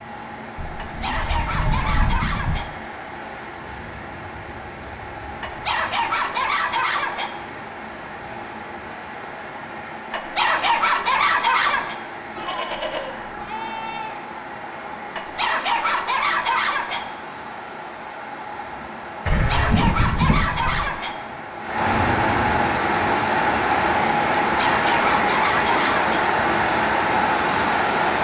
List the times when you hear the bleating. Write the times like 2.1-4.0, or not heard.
0.6-2.6, 12.3-14.2, 19.2-20.9.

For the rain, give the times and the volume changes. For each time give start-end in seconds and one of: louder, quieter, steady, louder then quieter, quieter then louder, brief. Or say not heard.
0.0-28.1 louder.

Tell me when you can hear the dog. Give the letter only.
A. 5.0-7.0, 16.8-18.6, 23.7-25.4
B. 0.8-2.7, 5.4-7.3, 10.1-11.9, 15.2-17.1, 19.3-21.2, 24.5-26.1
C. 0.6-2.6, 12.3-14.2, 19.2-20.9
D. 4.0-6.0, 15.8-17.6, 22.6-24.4
B.